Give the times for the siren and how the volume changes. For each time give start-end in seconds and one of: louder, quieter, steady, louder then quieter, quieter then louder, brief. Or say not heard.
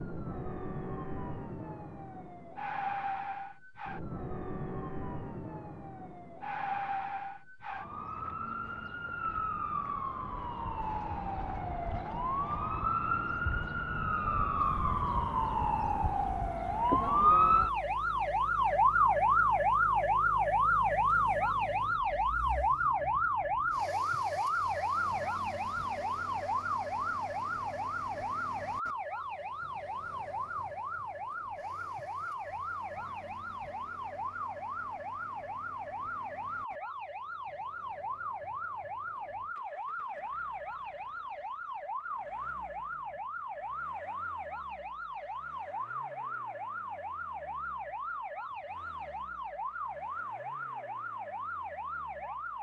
0.0-52.5 louder then quieter.